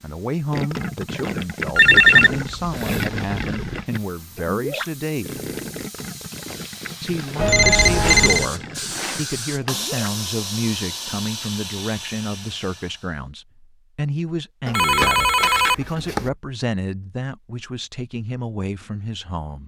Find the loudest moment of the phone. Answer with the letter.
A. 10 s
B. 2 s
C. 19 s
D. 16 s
B.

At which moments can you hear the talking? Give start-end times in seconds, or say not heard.
0.0-5.4, 7.0-19.6.